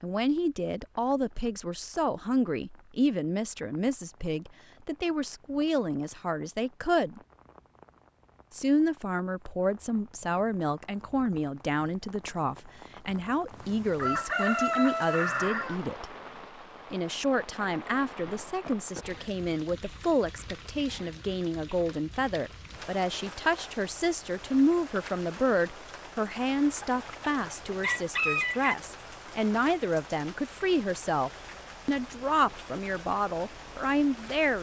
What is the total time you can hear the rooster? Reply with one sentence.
The rooster can be heard for 4 seconds in total.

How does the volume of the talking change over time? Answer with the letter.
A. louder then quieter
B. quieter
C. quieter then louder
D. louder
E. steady
E.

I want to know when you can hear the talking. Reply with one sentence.
The talking can be heard from 0.0 to 7.2 s, from 8.5 to 16.1 s and from 16.9 to 34.5 s.